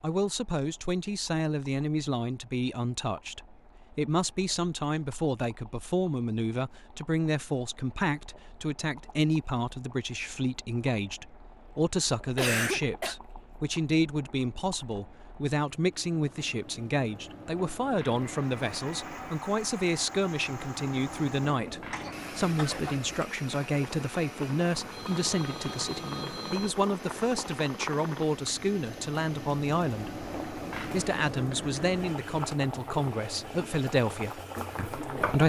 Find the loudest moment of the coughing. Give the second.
13 s.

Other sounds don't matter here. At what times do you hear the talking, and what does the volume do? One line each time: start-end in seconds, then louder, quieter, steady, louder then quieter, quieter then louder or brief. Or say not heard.
0.0-35.4 steady.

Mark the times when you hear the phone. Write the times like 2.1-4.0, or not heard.
24.7-26.7.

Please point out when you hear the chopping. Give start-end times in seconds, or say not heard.
not heard.